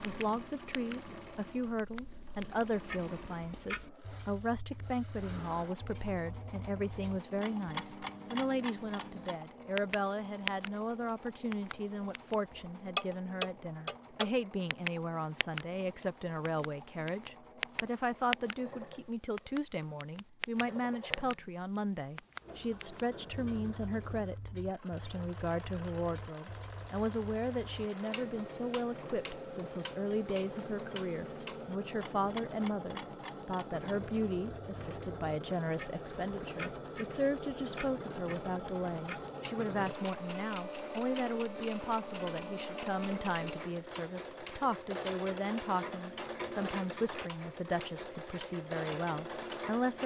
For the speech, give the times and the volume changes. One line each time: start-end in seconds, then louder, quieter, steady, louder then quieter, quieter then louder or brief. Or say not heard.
0.0-50.0 steady.